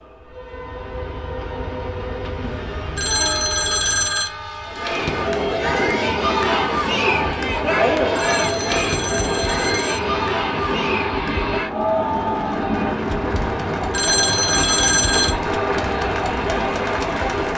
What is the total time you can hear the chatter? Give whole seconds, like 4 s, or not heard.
13 s.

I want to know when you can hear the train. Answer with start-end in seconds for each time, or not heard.
0.0-17.5.